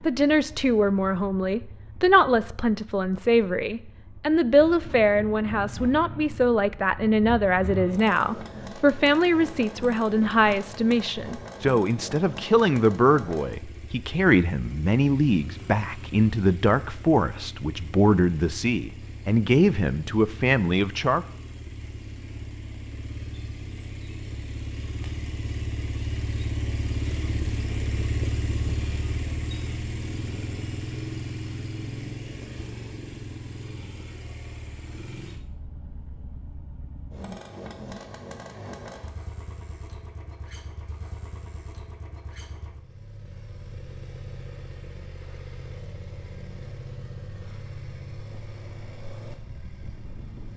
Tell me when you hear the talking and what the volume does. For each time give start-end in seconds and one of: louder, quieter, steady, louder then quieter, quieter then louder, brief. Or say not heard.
0.0-21.2 steady.